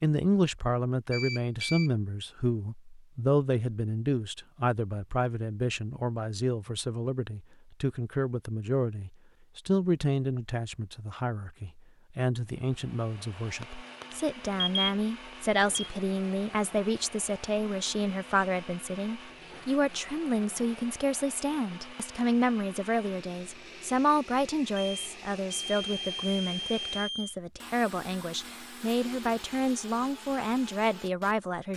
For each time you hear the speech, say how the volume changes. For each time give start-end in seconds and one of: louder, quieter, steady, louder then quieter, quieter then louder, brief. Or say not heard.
0.0-31.7 steady.